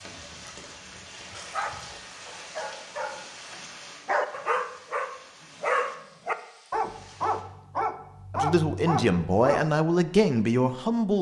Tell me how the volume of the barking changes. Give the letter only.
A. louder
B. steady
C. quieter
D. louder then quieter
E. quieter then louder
A.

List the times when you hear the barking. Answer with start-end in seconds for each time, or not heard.
0.1-9.7.